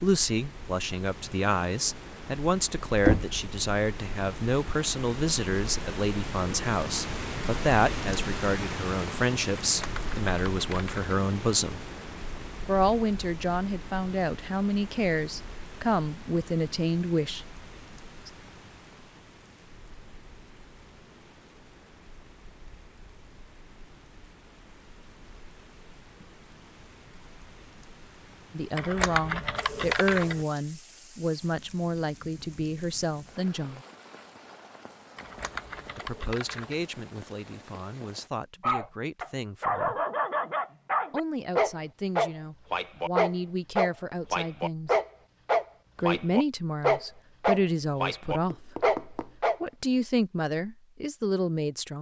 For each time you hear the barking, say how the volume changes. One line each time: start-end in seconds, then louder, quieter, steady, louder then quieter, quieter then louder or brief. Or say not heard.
38.6-49.5 steady.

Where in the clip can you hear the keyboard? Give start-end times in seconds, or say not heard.
9.6-11.1, 28.8-30.4, 35.1-36.9.